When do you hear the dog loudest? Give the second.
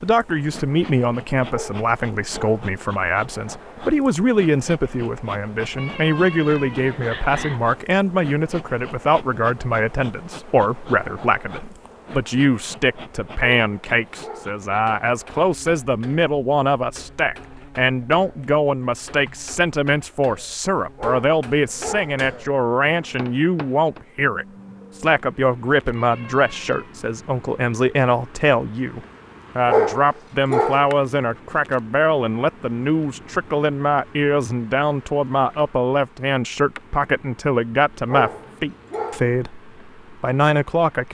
30 s.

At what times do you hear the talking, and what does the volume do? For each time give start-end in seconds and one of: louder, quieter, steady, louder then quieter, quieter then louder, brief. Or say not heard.
0.0-41.0 steady.